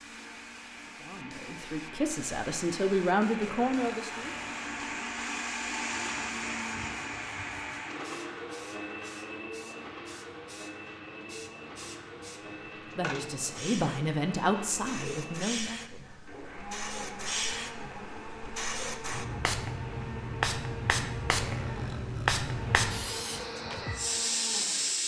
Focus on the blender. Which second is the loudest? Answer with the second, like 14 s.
6 s.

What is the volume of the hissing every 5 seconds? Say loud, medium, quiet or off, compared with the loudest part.
quiet, quiet, quiet, medium, loud.